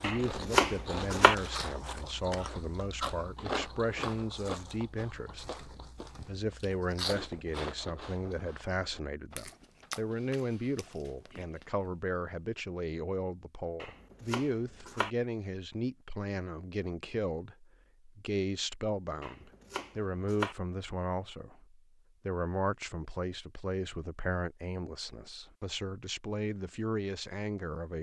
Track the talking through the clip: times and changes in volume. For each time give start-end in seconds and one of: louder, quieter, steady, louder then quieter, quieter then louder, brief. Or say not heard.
0.0-27.9 steady.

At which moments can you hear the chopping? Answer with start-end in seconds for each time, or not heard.
0.0-1.4, 13.8-15.1, 19.2-20.6.